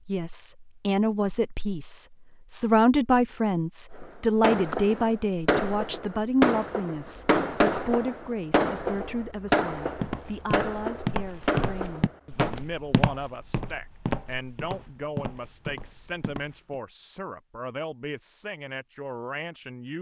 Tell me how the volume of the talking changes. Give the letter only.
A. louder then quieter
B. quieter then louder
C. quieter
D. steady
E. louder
C.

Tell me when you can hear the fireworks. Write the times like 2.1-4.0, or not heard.
4.0-12.6.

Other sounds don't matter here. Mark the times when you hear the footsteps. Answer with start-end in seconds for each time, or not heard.
9.9-16.8.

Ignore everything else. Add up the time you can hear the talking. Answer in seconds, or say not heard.
20 s.